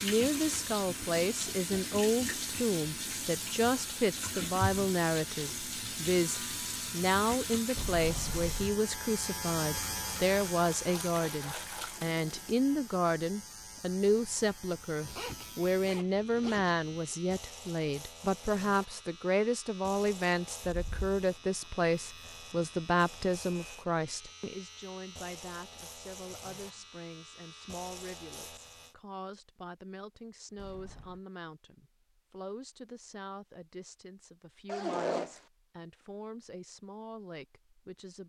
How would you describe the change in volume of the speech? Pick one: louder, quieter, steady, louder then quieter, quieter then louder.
quieter.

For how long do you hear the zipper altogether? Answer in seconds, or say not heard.
3 s.